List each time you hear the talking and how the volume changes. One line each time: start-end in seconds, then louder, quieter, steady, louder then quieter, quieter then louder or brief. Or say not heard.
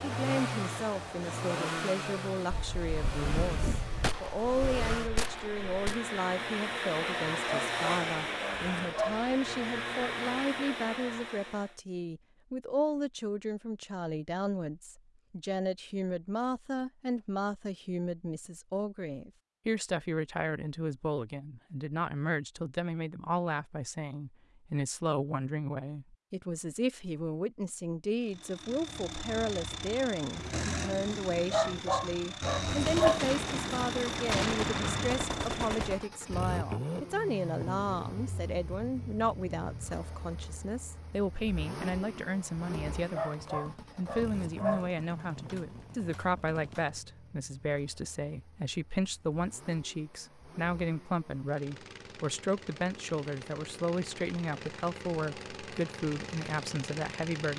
0.0-57.5 steady.